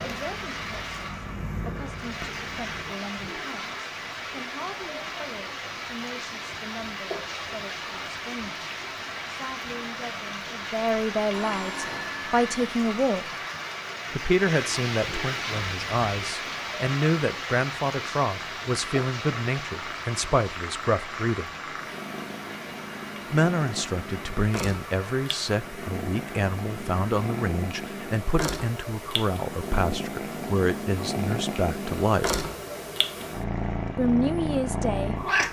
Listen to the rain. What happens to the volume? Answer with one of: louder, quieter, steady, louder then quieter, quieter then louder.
quieter.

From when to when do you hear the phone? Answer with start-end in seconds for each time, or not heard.
11.3-12.5.